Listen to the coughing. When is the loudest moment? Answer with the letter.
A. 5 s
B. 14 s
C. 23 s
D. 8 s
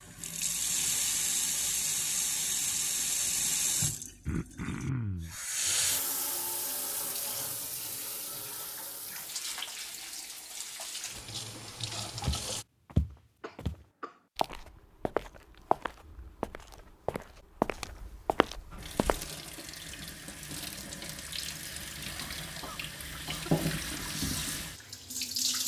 A.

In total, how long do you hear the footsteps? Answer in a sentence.
You can hear the footsteps for 7 seconds altogether.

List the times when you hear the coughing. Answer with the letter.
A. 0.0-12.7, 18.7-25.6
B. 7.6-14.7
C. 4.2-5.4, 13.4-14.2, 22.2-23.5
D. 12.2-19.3
C.